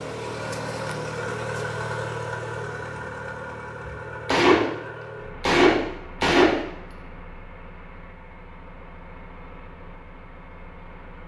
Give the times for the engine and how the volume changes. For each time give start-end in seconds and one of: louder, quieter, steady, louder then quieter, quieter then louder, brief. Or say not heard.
0.0-11.2 quieter.